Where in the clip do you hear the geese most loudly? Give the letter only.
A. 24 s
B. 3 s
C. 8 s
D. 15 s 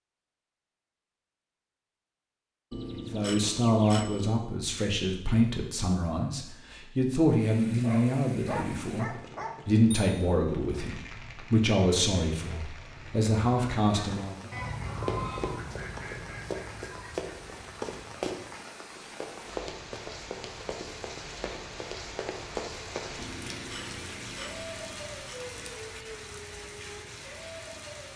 D.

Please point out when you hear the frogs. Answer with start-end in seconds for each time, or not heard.
not heard.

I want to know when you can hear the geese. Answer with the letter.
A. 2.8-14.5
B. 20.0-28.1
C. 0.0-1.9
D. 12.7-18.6
D.